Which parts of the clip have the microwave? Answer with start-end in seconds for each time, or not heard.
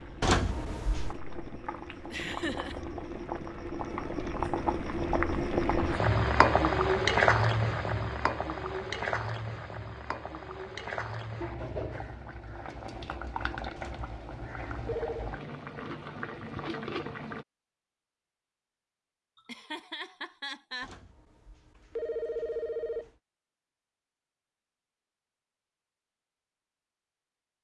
not heard.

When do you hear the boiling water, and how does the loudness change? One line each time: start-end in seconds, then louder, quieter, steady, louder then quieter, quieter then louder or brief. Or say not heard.
0.0-17.4 louder then quieter.